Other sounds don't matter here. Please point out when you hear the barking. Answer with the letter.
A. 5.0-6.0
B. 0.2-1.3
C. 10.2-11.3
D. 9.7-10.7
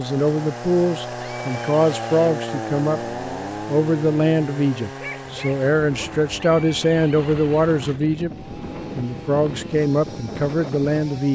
A.